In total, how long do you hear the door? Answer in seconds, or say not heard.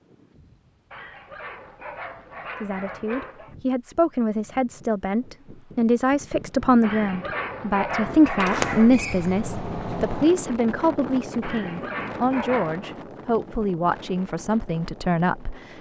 2 s.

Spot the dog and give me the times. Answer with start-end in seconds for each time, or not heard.
0.9-3.5, 6.8-8.9, 11.4-12.9.